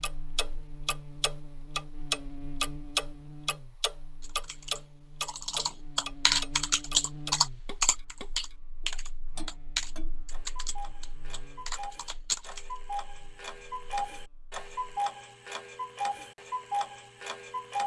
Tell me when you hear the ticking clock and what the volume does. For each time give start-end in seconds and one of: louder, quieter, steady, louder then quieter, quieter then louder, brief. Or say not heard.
0.0-17.8 quieter then louder.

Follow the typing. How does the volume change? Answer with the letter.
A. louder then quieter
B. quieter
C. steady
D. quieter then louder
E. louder
A.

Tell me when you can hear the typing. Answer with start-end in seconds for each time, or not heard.
4.2-12.7.